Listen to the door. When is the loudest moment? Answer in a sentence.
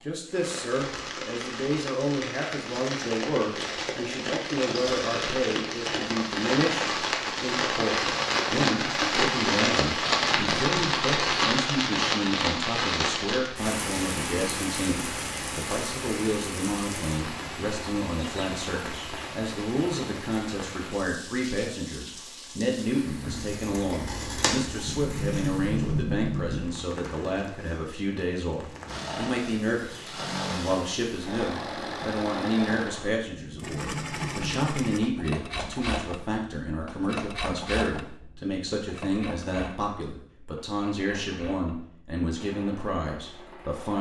The volume of the door peaks at 26 seconds.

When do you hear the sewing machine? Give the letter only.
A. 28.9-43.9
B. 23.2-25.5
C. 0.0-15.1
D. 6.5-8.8
A.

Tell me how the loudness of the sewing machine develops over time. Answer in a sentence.
The loudness of the sewing machine goes down.